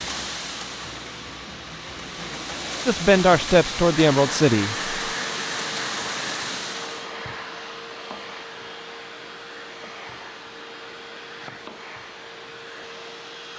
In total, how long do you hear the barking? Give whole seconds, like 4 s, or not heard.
not heard.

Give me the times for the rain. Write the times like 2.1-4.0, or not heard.
0.0-7.2.